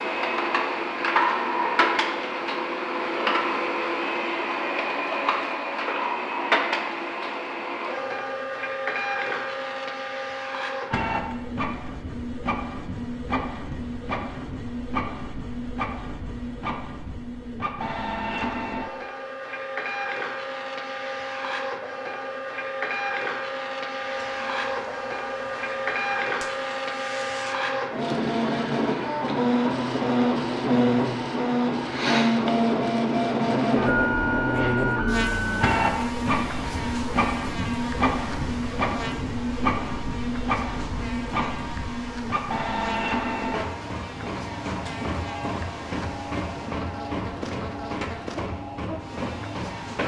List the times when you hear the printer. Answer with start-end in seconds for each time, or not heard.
0.0-50.0.